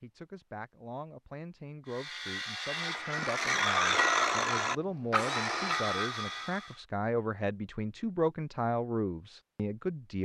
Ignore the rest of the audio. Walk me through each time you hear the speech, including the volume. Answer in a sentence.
The speech can be heard from 0.0 to 10.2 s, getting louder.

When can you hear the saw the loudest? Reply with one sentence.
The loudest moment of the saw is at 4 seconds.